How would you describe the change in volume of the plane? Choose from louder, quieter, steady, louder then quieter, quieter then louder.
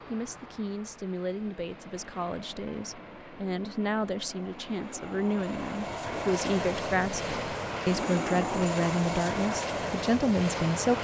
louder.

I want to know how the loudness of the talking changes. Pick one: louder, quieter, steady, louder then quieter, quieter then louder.
louder.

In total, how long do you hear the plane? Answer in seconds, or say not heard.
11 s.